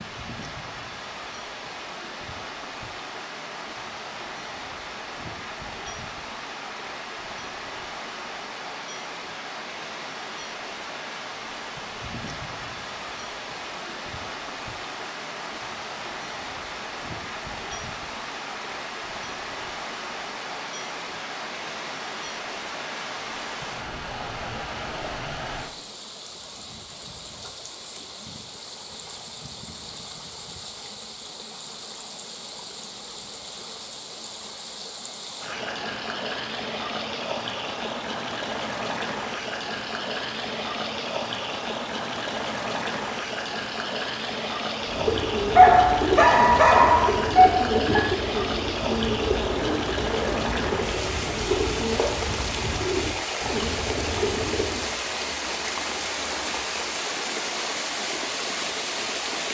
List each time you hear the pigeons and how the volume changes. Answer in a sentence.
You can hear the pigeons from 44.8 to 55.0 s, at a steady volume.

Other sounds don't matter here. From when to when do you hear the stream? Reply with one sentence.
You can hear the stream from 0.0 to 59.4 s.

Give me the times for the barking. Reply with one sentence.
You can hear the barking from 45.5 to 48.0 s.